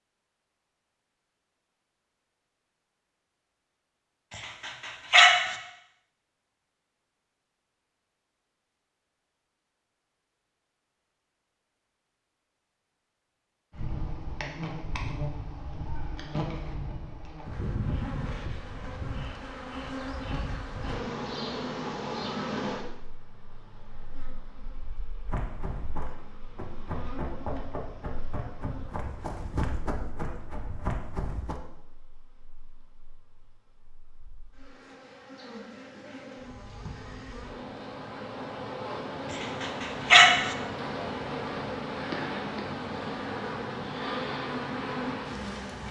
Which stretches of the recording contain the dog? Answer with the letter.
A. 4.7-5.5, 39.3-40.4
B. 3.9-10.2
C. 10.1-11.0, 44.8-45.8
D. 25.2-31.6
A.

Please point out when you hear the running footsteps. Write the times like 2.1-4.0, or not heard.
25.2-31.6.